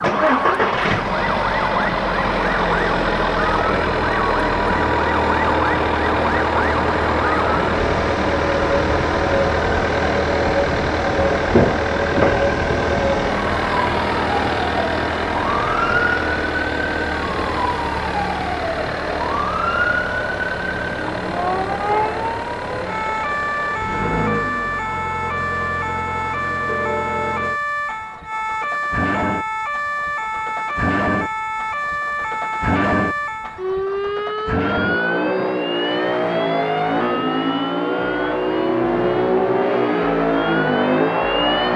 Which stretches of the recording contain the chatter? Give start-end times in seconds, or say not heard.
not heard.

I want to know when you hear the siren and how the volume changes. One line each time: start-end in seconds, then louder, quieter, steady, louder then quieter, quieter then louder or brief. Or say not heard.
0.0-41.7 steady.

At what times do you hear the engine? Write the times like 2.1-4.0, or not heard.
0.0-41.7.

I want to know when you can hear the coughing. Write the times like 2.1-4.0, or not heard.
not heard.